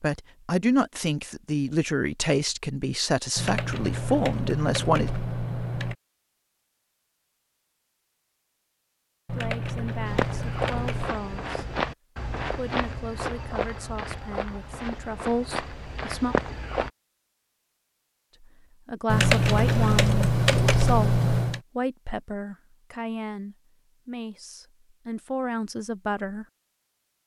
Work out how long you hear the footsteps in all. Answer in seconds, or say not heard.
7 s.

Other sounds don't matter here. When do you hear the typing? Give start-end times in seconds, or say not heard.
3.4-6.0, 9.2-11.1, 19.1-21.6.